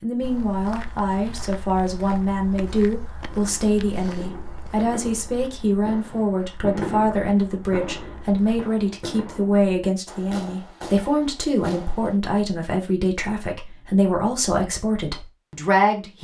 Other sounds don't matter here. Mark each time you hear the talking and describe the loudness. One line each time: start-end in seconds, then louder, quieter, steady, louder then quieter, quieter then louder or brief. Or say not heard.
0.0-16.1 steady.